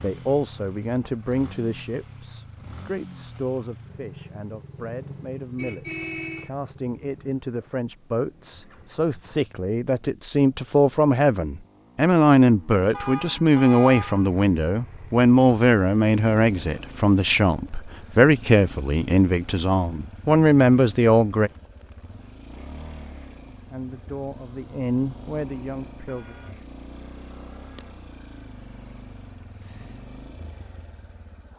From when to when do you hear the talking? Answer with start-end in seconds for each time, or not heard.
0.0-21.5, 23.7-26.4.